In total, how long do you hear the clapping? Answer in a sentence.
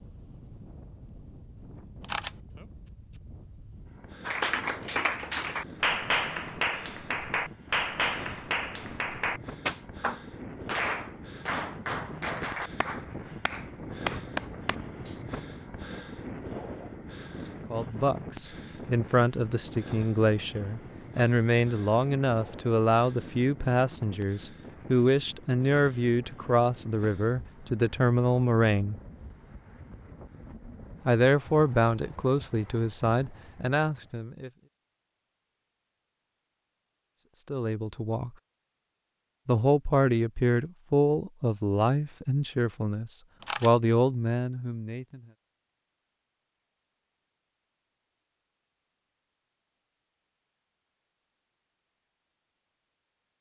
The clapping can be heard for 11 seconds in total.